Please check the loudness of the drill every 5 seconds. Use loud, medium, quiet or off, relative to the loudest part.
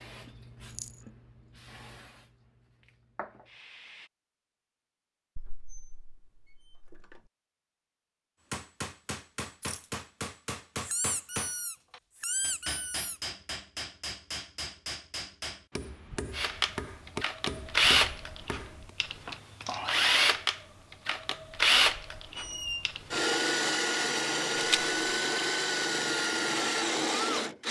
off, off, off, loud, loud, loud.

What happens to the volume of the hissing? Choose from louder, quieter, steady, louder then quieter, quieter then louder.
quieter then louder.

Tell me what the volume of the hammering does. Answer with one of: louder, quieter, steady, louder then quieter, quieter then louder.
steady.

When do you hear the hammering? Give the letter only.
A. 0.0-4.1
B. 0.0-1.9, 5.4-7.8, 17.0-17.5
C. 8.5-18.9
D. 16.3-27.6
C.